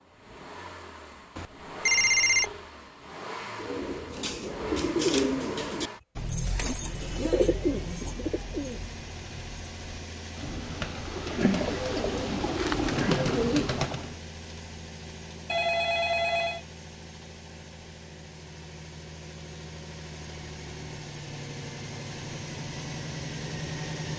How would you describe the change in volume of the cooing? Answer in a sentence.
The loudness of the cooing goes down, then up.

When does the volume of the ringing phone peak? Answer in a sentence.
The loudest moment of the ringing phone is at 2 seconds.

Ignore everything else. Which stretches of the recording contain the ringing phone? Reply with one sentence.
You can hear the ringing phone from 1.4 to 2.6 s and from 15.4 to 16.6 s.